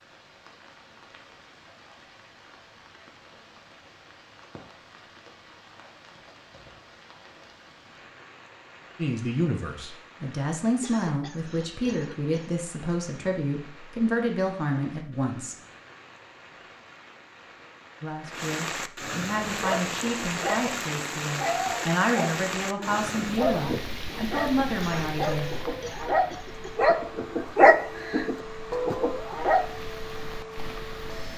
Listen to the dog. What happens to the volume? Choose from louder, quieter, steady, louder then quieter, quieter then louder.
louder.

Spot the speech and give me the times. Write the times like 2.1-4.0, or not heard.
8.9-15.6, 18.0-25.6.